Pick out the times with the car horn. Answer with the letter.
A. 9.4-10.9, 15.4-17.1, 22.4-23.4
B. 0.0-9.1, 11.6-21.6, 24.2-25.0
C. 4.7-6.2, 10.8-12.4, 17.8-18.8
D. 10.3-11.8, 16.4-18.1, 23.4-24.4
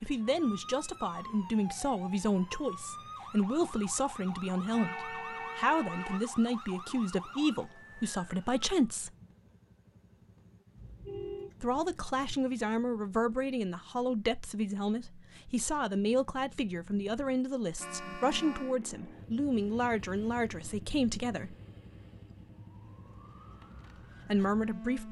C.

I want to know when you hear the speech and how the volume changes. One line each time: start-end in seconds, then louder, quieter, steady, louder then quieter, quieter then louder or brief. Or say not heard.
0.0-9.1 steady
11.6-21.6 steady
24.2-25.0 brief.